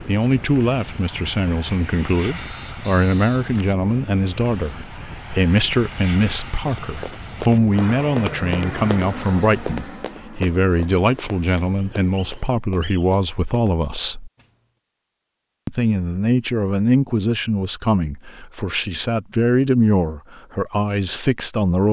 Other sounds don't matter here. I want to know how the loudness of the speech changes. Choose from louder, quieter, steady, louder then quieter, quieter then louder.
steady.